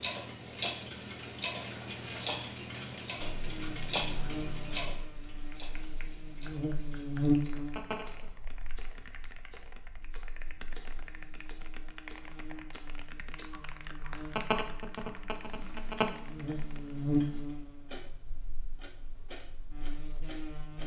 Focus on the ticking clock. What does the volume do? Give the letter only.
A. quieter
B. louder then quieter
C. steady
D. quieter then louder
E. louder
A.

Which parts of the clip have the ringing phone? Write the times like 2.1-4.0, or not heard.
7.3-8.3, 13.8-16.1.